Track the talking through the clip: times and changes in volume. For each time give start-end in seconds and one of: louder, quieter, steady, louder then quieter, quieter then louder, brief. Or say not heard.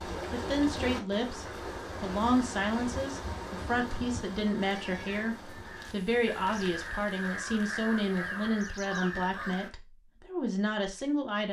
0.3-11.4 steady.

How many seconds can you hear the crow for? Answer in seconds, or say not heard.
5 s.